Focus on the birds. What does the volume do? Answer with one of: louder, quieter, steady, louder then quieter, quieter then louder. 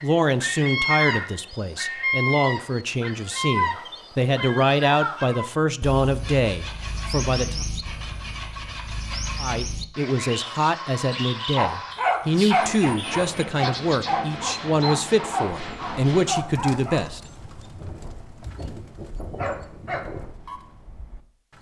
quieter.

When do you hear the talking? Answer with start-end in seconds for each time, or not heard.
0.0-7.7, 9.4-17.2.